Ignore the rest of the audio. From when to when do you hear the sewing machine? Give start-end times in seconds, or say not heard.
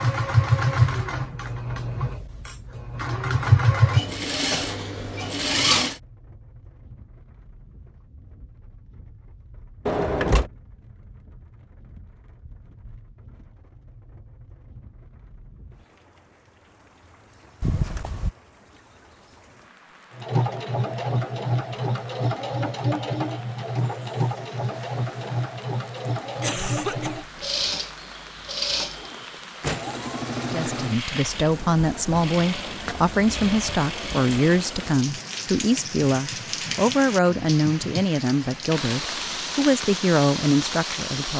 0.0-6.0, 20.1-34.8.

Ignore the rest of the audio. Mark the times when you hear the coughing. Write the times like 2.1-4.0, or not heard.
26.4-27.3.